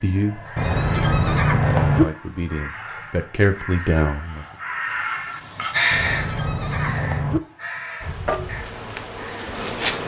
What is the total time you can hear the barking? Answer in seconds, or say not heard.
not heard.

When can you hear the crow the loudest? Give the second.
6 s.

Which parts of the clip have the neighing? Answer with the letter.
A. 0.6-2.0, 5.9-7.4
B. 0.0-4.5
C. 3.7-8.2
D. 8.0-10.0
A.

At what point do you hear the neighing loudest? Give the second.
2 s.